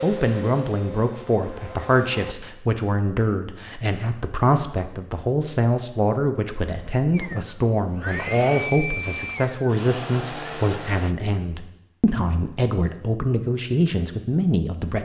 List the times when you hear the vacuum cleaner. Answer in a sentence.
The vacuum cleaner can be heard from 0.0 to 2.4 s and from 7.1 to 11.2 s.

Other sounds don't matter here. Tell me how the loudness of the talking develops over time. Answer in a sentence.
The volume of the talking stays about the same.